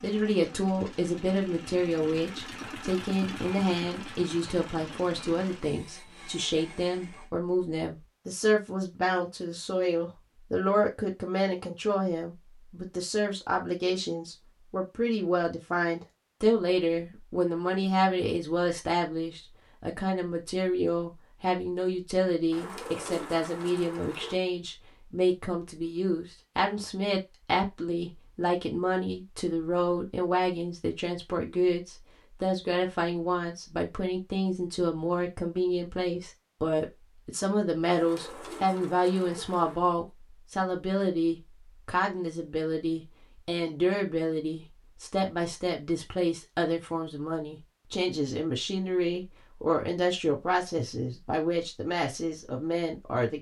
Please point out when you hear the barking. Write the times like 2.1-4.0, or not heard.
not heard.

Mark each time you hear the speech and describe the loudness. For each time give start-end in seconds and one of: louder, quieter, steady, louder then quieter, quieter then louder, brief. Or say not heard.
0.0-53.3 steady.